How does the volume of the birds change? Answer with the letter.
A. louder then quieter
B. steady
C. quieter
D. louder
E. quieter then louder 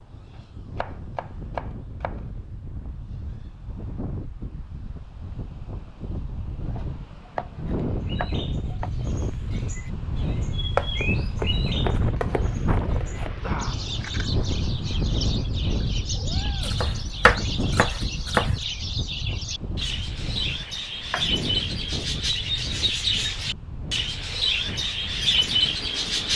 D.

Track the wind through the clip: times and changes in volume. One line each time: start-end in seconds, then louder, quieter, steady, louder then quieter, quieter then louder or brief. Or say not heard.
0.0-26.3 louder then quieter.